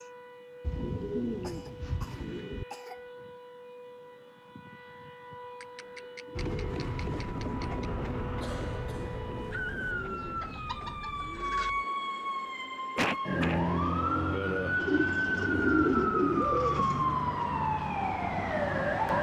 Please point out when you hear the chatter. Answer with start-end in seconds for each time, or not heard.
not heard.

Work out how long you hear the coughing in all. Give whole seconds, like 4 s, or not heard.
4 s.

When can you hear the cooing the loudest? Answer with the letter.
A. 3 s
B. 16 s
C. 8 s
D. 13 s
B.